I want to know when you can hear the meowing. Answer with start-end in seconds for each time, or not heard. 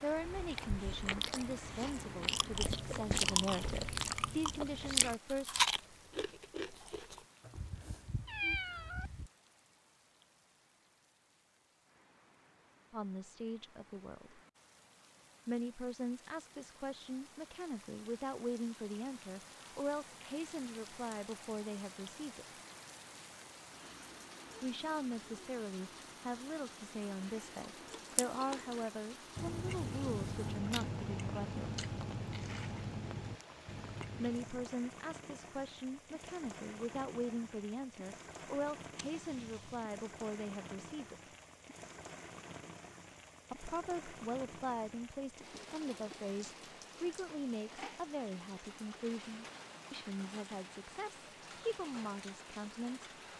7.5-9.3, 39.0-39.9.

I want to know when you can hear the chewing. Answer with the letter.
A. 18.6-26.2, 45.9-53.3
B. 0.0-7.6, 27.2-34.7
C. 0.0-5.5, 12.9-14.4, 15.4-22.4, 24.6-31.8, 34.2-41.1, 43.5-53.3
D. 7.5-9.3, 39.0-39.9
B.